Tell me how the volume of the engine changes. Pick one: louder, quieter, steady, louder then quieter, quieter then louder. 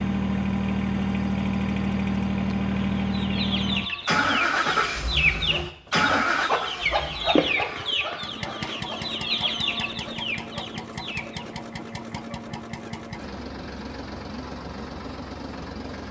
quieter.